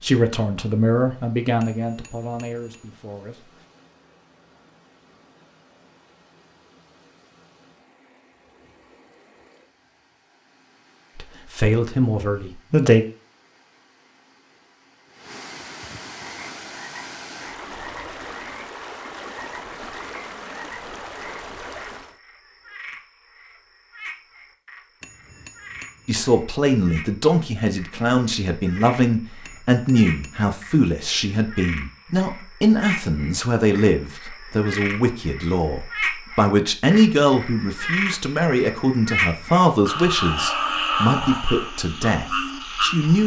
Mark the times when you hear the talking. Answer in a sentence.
You can hear the talking from 0.0 to 3.5 s, from 11.2 to 13.1 s and from 26.1 to 43.2 s.